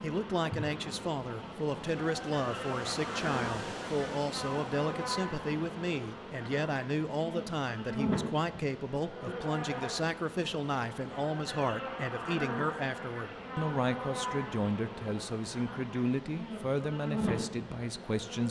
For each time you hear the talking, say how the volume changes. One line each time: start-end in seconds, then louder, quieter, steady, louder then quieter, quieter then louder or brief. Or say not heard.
0.0-18.4 steady.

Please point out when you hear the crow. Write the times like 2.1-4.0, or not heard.
not heard.